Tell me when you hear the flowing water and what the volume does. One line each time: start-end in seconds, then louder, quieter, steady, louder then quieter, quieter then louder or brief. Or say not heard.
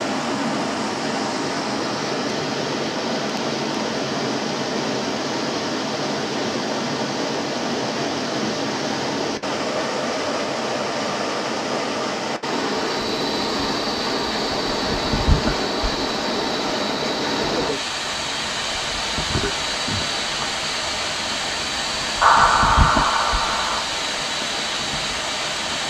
0.0-25.8 steady.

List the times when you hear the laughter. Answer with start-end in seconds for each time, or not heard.
22.2-23.8.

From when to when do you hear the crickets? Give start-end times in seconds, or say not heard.
12.9-25.8.